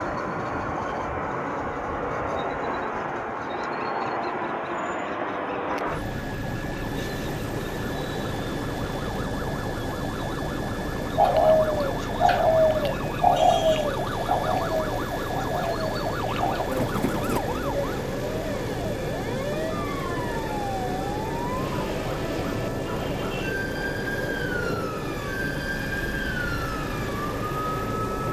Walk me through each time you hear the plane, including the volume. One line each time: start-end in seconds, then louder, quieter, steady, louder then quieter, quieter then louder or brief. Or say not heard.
0.0-28.2 steady.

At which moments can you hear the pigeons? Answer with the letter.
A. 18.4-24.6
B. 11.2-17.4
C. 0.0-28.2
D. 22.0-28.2
B.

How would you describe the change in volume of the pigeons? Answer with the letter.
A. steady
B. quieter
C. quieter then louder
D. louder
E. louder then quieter
B.